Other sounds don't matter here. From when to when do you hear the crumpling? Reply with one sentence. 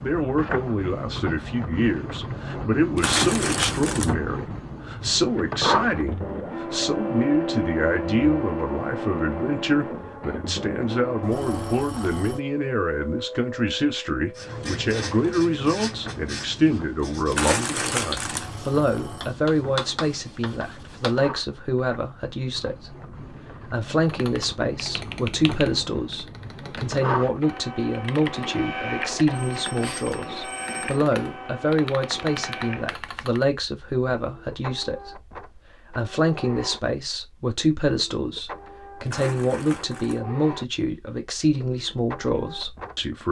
You can hear the crumpling from 3.0 to 4.2 s, from 17.3 to 18.5 s and from 39.0 to 40.2 s.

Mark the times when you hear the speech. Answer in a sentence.
The speech can be heard from 0.0 to 43.2 s.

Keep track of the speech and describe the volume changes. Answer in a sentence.
The loudness of the speech stays about the same.